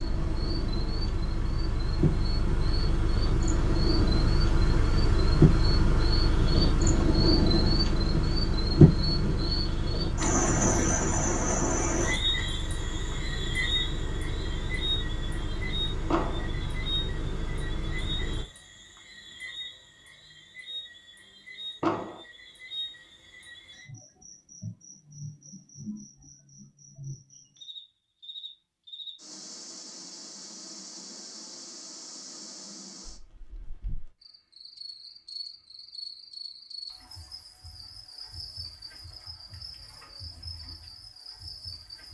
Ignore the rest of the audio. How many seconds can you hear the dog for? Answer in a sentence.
You can't hear the dog here.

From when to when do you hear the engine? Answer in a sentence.
The engine can be heard from 0.0 to 18.4 s.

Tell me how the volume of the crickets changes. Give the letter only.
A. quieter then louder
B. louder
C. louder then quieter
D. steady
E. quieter
E.